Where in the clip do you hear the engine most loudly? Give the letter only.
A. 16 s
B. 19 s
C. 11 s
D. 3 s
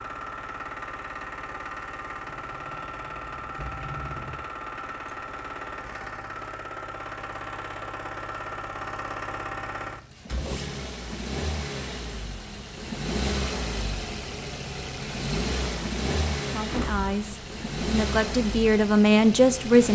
A.